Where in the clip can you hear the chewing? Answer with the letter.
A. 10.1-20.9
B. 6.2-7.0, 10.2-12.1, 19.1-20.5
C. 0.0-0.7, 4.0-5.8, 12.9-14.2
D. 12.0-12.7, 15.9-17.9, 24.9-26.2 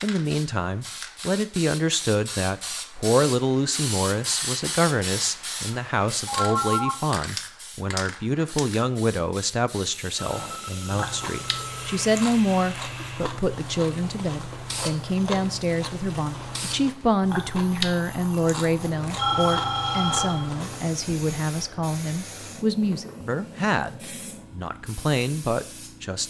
A.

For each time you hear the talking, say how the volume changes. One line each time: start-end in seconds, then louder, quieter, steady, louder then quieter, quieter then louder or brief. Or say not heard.
0.0-26.2 steady.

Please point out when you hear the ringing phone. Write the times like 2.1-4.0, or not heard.
6.2-7.0, 10.2-12.1, 19.1-20.5.